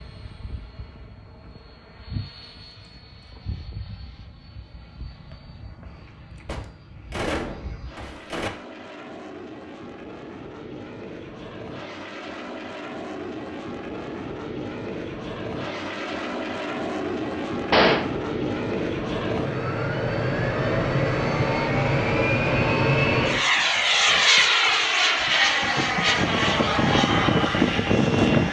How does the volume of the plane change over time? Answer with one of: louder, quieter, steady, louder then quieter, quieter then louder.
louder.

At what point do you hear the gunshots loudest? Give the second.
18 s.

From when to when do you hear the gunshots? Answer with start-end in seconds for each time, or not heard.
6.5-8.5, 17.7-18.1.